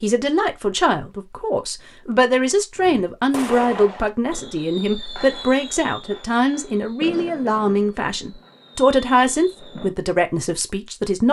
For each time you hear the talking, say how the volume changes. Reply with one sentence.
The talking can be heard from 0.0 to 11.2 s, at a steady volume.